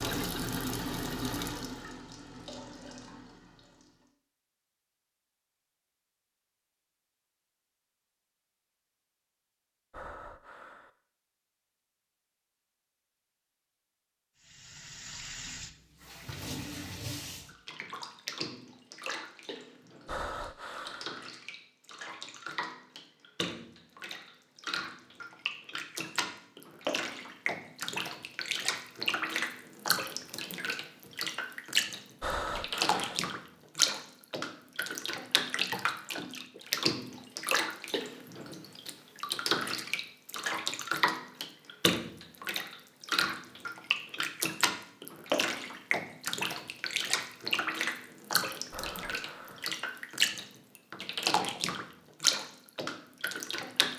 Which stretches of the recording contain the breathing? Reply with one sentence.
The breathing can be heard from 9.9 to 10.9 s, from 20.1 to 21.1 s, from 32.2 to 33.2 s and from 48.7 to 49.7 s.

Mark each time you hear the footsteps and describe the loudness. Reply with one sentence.
The footsteps can't be heard in this clip.